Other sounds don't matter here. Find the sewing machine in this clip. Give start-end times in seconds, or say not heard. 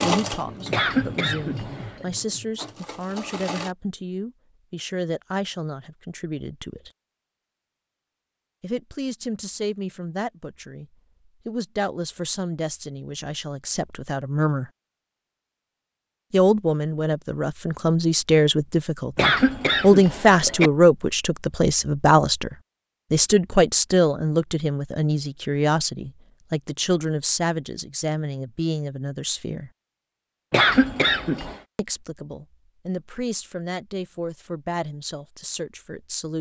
0.0-3.8.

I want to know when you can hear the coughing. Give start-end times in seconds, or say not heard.
0.7-2.0, 19.1-20.7, 30.5-31.6.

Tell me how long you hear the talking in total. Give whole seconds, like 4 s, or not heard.
30 s.